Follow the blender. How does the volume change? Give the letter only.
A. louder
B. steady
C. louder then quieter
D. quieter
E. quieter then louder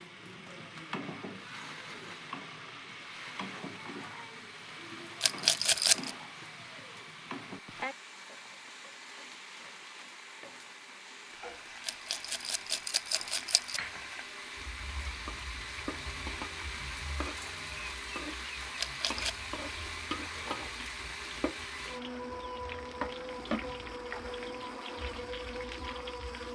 A.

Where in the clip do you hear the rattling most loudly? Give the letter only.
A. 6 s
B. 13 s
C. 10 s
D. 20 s
A.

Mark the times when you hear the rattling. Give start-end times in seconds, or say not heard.
5.2-6.1, 11.8-13.8, 18.8-19.4.